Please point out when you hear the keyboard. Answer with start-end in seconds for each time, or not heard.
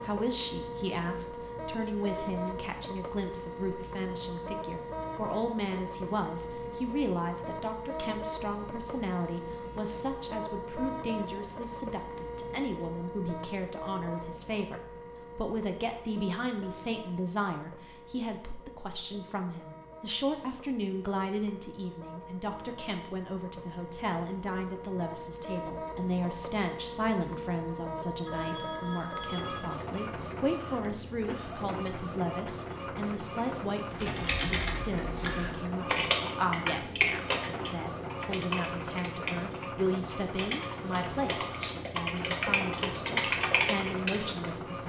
33.9-44.5.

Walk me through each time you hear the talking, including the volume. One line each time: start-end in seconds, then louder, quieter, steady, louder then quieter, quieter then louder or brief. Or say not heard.
0.0-44.8 steady.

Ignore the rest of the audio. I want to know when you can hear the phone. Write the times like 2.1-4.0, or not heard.
28.2-29.8.